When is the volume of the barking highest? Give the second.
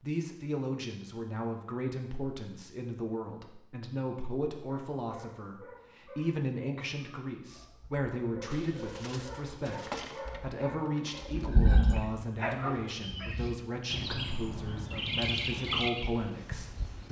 12 s.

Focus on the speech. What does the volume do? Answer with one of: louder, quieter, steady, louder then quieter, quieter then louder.
steady.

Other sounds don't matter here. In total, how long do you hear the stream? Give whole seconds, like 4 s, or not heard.
not heard.